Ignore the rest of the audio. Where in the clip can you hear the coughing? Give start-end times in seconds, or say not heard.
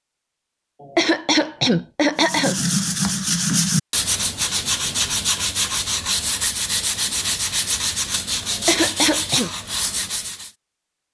0.8-2.6, 8.5-9.5.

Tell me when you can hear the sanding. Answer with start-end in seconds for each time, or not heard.
2.1-10.5.